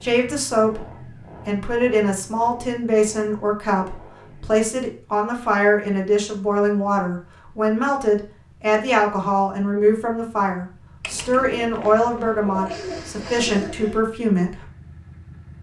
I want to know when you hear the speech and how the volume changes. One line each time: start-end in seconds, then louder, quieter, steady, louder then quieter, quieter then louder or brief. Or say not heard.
0.0-0.8 brief
1.4-14.6 steady.